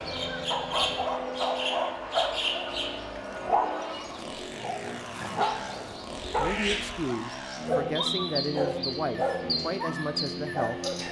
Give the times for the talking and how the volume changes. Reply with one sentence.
The talking can be heard from 6.3 to 10.8 s, at a steady volume.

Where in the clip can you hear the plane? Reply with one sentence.
The plane can be heard from 0.0 to 11.0 s.